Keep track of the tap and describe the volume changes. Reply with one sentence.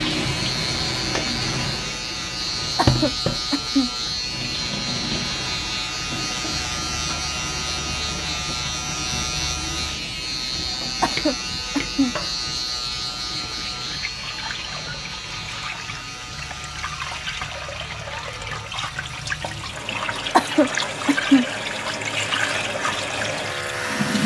The volume of the tap goes down, then up.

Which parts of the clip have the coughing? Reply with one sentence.
You can hear the coughing from 2.8 to 3.9 s, from 11.0 to 12.2 s and from 20.3 to 21.4 s.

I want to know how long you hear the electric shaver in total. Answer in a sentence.
The electric shaver can be heard for 24 seconds in total.